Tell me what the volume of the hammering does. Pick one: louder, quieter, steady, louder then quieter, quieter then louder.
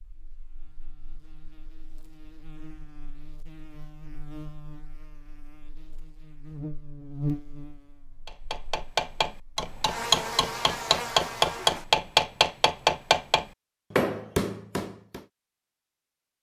louder then quieter.